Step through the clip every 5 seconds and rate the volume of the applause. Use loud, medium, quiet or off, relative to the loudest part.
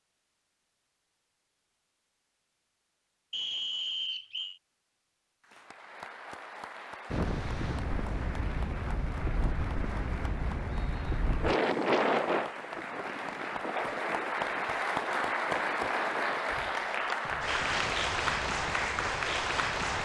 off, quiet, medium, loud.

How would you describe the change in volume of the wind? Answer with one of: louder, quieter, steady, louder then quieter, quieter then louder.
louder then quieter.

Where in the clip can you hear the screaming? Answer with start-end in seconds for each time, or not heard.
not heard.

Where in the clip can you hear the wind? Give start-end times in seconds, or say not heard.
7.1-20.0.